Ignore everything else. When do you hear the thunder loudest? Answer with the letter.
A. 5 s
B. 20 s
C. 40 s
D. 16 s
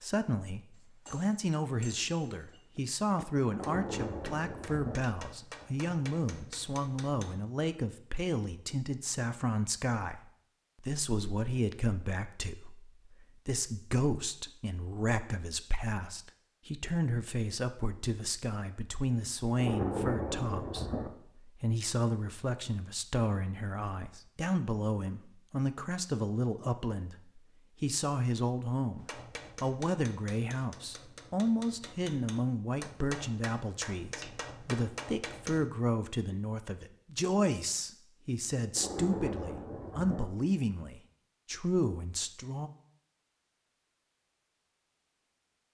B.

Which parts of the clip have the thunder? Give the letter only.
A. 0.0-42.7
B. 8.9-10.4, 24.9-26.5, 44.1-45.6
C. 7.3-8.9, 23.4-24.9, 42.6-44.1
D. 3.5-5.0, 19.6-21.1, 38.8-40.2
D.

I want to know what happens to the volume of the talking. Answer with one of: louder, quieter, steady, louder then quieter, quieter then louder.
steady.